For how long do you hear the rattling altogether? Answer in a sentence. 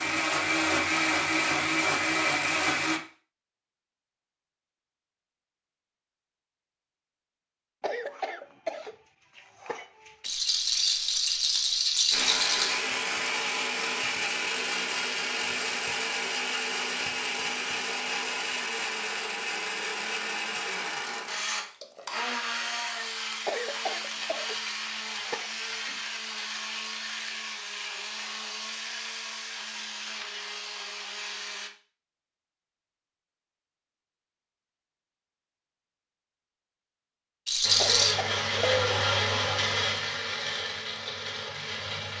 You can hear the rattling for 3 seconds altogether.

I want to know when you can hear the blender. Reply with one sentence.
The blender can be heard from 0.0 to 3.0 s, from 12.1 to 31.7 s and from 37.6 to 42.1 s.